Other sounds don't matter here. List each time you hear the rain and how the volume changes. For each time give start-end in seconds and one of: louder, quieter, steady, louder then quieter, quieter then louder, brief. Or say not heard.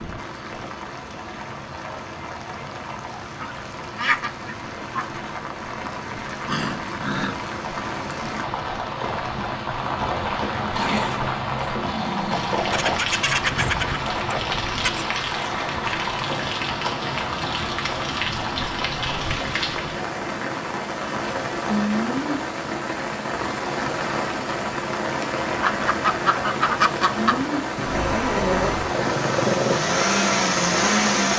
0.0-31.3 louder.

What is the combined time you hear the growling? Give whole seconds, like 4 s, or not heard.
5 s.